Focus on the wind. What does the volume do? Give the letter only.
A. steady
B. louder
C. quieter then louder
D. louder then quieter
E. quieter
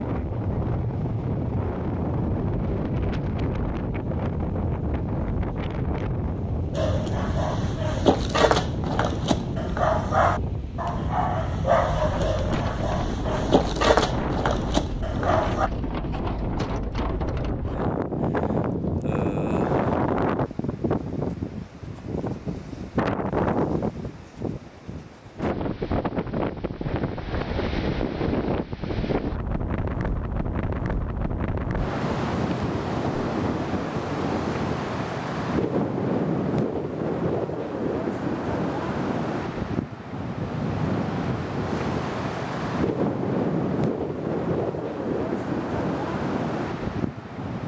A.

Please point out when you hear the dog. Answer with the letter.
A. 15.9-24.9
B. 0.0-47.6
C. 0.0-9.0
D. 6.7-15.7
D.